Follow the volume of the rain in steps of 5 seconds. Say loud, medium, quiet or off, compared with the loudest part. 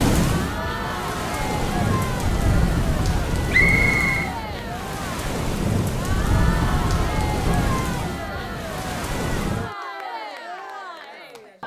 loud, loud, off.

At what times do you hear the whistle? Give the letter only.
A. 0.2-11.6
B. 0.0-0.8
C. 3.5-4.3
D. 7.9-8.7
C.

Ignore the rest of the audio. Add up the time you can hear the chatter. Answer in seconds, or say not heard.
11 s.